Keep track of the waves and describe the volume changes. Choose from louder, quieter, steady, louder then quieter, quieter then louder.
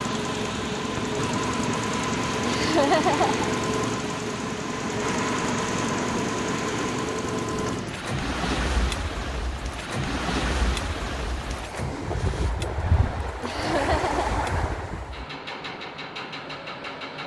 steady.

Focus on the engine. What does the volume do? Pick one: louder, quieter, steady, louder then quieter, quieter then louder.
quieter.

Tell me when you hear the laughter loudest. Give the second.
3 s.